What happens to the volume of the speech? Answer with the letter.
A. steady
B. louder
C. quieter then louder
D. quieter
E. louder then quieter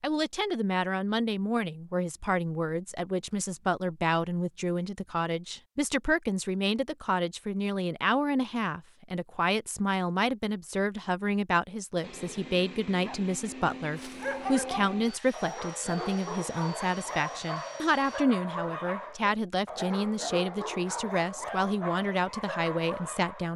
A.